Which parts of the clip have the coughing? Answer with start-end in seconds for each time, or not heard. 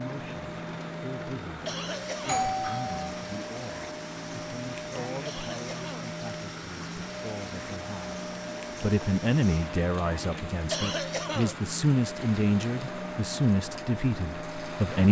1.6-2.5, 5.2-6.1, 10.7-11.6.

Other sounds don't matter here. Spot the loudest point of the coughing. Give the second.
11 s.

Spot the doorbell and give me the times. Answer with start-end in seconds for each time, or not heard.
2.2-3.0.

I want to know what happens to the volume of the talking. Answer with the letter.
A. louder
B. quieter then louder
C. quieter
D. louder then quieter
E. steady
A.